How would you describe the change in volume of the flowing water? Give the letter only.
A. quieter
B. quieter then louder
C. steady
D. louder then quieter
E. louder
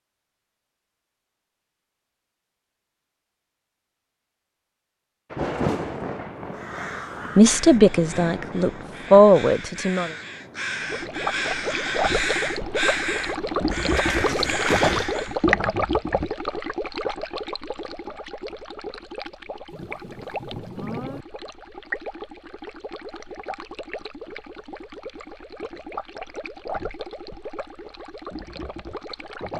A.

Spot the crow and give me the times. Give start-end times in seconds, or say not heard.
6.5-15.4.